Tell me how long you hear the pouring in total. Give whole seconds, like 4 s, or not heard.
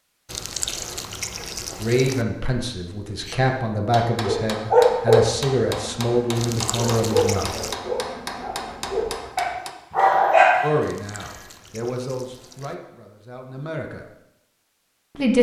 5 s.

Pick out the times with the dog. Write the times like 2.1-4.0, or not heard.
4.2-10.6.